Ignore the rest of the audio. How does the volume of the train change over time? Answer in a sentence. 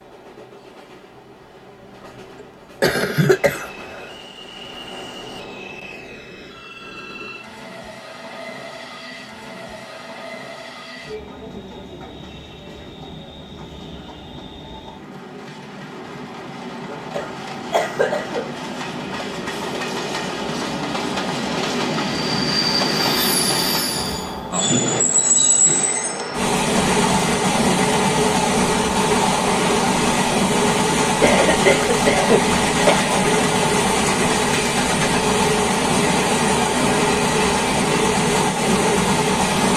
The volume of the train goes up.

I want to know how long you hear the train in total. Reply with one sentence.
You can hear the train for 40 seconds altogether.